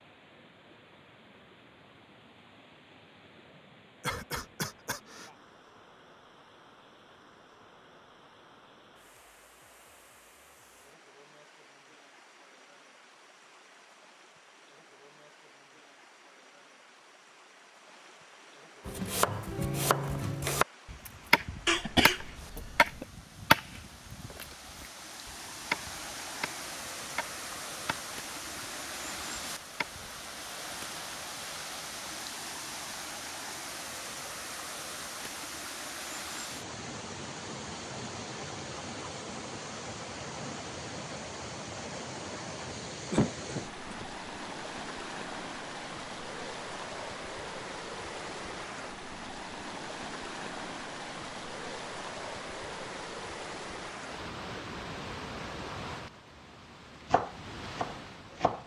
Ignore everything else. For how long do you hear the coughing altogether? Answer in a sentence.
The coughing can be heard for 4 seconds in total.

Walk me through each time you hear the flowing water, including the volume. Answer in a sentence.
The flowing water can be heard from 0.0 to 58.6 s, getting louder.